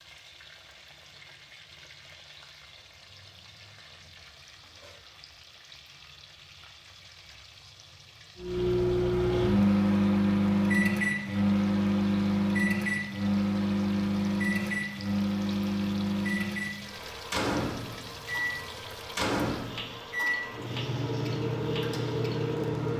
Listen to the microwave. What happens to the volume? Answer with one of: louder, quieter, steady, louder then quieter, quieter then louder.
quieter.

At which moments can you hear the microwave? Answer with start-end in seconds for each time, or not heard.
8.3-22.9.